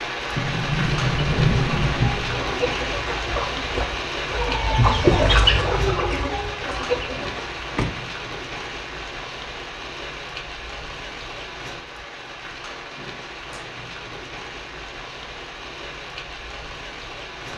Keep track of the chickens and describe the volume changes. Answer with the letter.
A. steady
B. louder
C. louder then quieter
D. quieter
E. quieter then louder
C.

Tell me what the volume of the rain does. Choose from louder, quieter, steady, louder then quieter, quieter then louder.
quieter.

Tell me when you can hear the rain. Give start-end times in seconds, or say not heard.
0.0-17.5.